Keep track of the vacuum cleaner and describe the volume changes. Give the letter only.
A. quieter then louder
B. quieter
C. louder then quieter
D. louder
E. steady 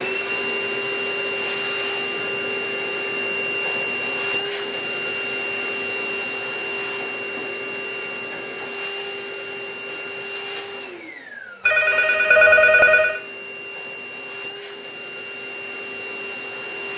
B.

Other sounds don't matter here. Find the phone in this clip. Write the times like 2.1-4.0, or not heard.
11.7-13.2.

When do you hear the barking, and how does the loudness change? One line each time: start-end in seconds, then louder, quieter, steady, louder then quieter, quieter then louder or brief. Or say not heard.
not heard.